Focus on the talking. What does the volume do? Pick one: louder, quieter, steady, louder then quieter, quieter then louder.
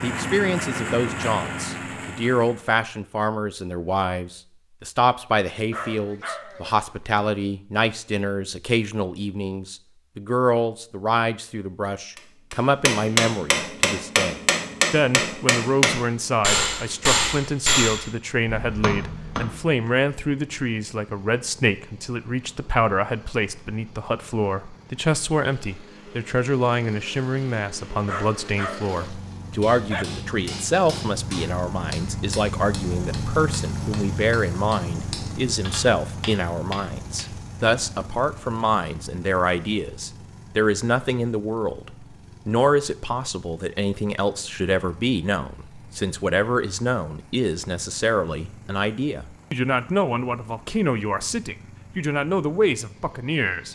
steady.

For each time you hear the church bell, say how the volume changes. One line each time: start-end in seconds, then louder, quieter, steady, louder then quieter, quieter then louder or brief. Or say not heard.
not heard.